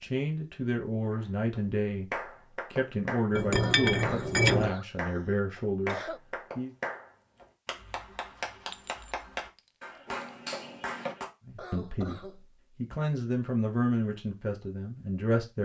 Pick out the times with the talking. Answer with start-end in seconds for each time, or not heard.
0.0-6.7, 11.4-15.5.